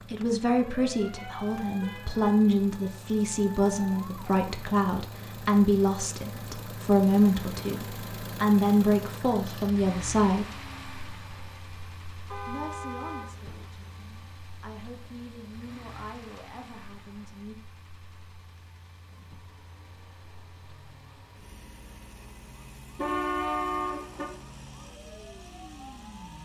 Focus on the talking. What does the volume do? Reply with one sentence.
The loudness of the talking goes down.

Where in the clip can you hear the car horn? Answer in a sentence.
You can hear the car horn from 1.1 to 2.9 s, from 12.3 to 13.7 s and from 22.9 to 24.3 s.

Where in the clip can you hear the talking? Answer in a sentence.
You can hear the talking from 0.1 to 10.5 s and from 12.4 to 17.6 s.